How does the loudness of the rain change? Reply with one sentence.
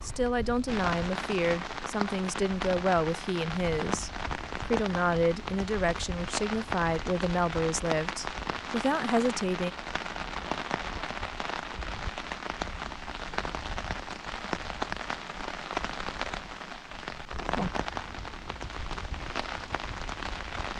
The loudness of the rain stays about the same.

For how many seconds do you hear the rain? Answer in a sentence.
You can hear the rain for 21 seconds altogether.